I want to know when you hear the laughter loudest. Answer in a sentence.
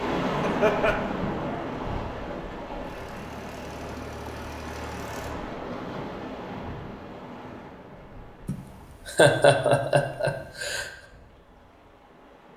The volume of the laughter peaks at 9 seconds.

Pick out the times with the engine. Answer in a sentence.
You can hear the engine from 2.8 to 5.3 s.